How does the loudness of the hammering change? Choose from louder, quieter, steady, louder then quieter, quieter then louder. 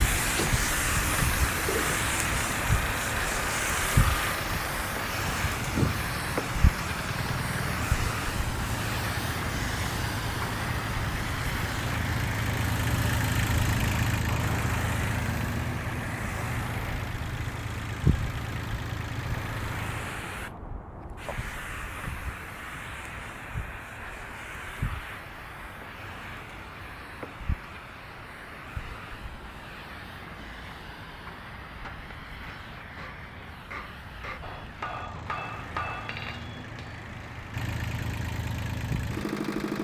louder.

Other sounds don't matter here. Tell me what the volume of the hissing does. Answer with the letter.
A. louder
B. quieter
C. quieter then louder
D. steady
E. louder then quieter
B.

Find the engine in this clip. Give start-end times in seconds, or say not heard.
0.0-20.2, 34.8-39.7.